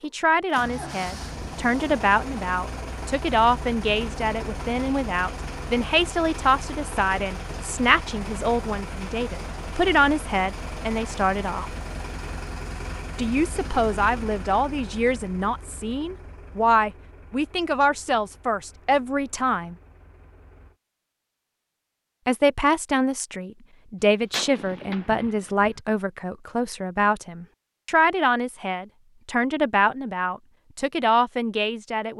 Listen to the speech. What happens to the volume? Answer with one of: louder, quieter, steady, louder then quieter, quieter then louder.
steady.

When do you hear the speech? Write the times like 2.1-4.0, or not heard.
0.0-11.7, 13.2-19.8, 22.2-32.1.